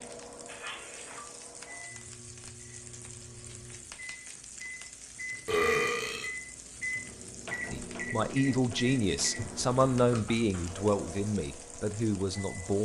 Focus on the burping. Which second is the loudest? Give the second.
6 s.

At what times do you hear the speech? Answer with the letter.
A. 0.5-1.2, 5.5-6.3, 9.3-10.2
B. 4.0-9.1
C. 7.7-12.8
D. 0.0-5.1
C.